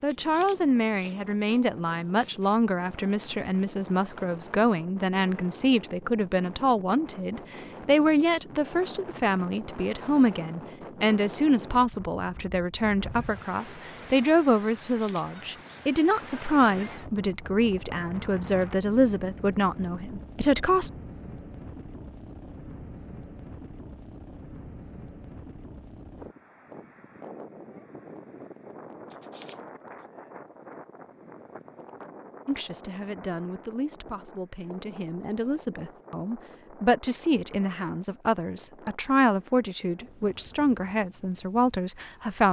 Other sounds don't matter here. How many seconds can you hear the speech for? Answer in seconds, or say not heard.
31 s.